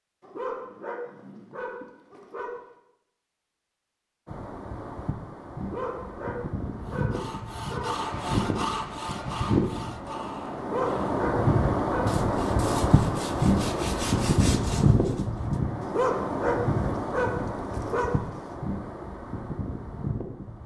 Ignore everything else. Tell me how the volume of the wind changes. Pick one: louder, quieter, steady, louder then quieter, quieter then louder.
louder then quieter.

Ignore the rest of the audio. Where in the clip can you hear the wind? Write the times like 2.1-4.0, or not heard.
4.2-20.6.